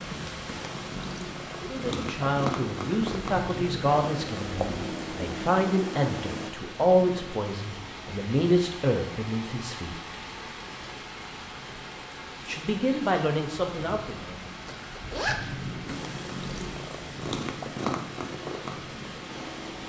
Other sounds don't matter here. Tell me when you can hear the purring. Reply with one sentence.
You can hear the purring from 0.0 to 6.5 s and from 15.8 to 19.8 s.